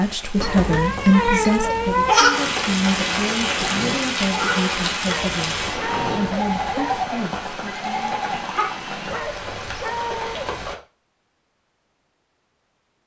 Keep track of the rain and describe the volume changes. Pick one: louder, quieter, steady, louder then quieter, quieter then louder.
louder then quieter.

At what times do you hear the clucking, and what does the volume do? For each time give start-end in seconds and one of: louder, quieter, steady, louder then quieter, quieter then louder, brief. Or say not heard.
not heard.